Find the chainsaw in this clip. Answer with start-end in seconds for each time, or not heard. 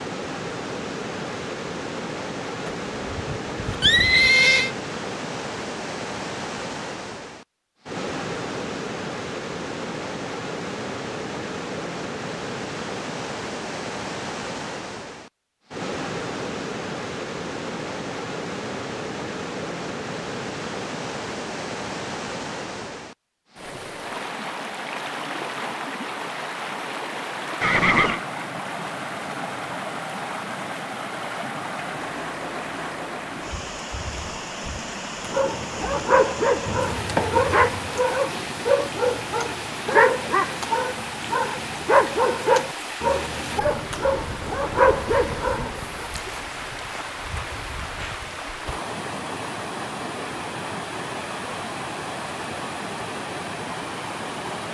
not heard.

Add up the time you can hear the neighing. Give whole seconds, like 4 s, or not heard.
4 s.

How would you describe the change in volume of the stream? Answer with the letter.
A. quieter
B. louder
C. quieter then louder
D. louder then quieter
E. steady
E.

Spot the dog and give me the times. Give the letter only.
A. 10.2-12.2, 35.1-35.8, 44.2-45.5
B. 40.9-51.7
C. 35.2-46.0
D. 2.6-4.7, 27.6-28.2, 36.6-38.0
C.